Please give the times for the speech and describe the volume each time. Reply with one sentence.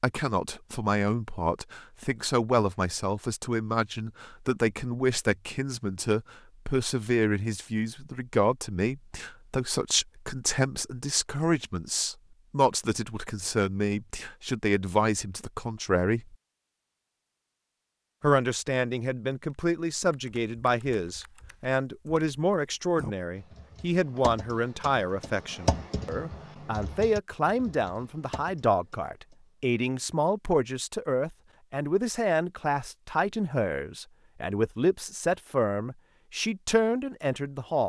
You can hear the speech from 0.0 to 16.4 s, at a steady volume; and from 18.2 to 37.8 s, at a steady volume.